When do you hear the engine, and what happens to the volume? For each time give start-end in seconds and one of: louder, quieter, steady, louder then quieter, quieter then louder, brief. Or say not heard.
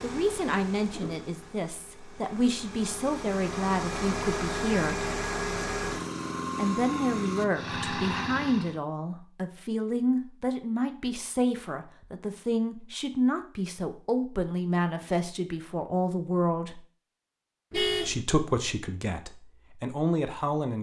0.0-8.8 louder.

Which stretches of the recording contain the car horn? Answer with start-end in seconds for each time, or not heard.
17.7-18.2.